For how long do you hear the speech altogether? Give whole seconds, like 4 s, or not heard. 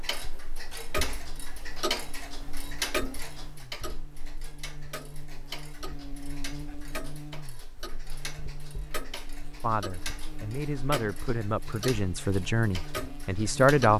4 s.